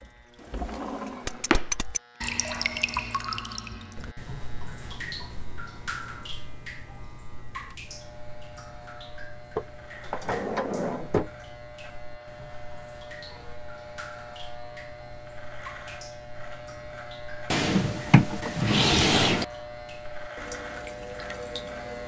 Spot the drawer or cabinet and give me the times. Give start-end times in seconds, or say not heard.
0.5-1.6, 9.6-11.3, 17.5-19.4.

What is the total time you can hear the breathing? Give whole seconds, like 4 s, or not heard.
not heard.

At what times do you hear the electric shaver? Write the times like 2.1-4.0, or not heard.
0.0-22.0.